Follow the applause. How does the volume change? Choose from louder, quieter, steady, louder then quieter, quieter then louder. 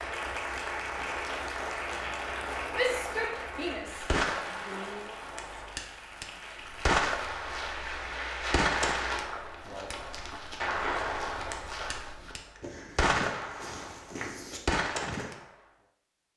quieter then louder.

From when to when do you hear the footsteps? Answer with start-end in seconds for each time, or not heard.
6.6-15.4.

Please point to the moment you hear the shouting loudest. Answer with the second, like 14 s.
3 s.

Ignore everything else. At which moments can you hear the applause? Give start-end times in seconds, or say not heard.
0.0-9.3.